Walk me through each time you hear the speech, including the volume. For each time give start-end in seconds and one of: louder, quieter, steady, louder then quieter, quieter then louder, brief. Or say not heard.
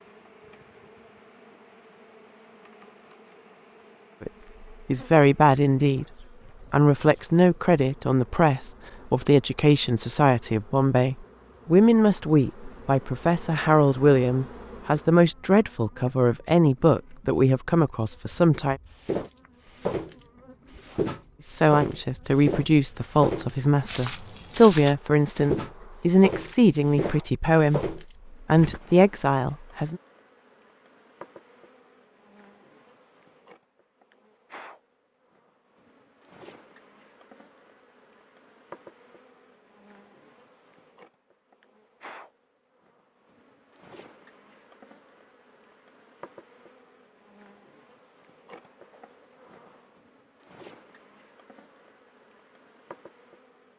4.2-6.0 brief
6.7-18.8 steady
21.4-30.0 steady.